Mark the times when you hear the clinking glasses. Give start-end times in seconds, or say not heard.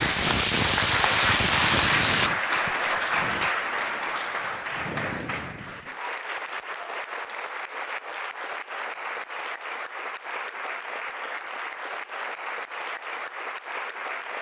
not heard.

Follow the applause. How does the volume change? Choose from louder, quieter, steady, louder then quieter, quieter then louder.
quieter.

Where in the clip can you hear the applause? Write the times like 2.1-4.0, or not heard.
0.0-14.3.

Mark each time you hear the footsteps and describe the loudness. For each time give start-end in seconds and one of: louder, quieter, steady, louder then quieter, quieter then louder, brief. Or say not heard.
not heard.